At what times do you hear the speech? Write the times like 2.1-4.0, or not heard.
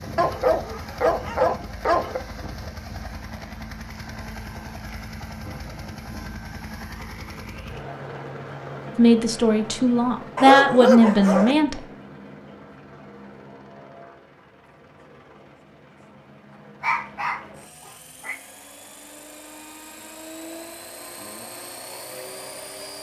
8.9-11.8.